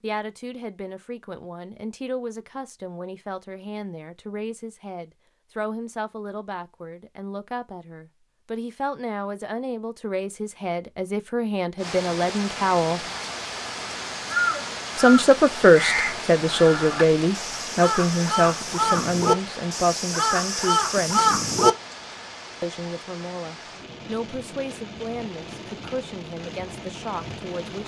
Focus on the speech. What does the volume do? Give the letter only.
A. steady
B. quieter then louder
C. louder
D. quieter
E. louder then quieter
E.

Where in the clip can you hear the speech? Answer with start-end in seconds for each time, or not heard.
0.0-13.1, 14.9-21.4, 22.6-27.8.